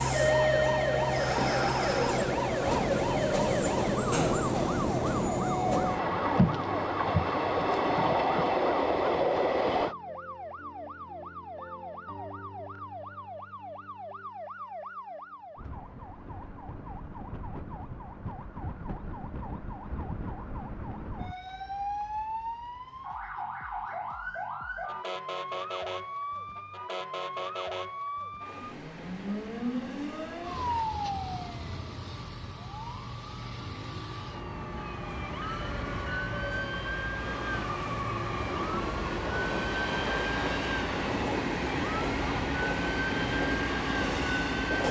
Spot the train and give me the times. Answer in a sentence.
You can hear the train from 0.0 to 9.9 s and from 28.4 to 44.8 s.